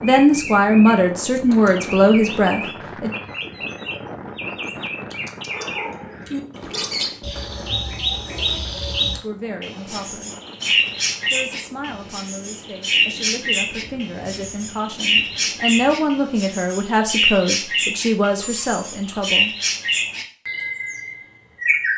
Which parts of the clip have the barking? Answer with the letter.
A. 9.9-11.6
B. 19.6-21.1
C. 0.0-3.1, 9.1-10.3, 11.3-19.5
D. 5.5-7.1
D.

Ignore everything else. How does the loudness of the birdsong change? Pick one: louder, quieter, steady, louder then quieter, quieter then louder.
louder.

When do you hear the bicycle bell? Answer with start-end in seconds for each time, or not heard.
18.4-19.3.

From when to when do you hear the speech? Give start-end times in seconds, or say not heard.
0.0-3.1, 9.1-10.3, 11.3-19.5.